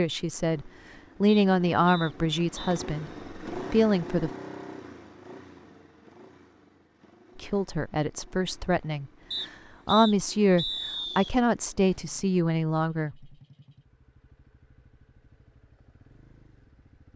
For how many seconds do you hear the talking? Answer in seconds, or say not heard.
10 s.